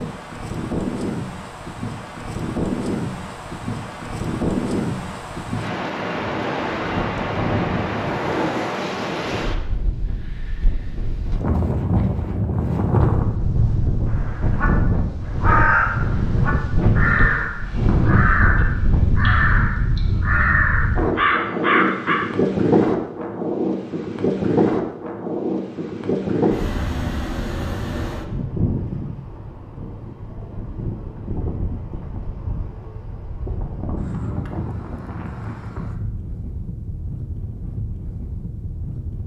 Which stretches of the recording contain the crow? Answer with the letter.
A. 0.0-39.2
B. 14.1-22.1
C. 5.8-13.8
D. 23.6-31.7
B.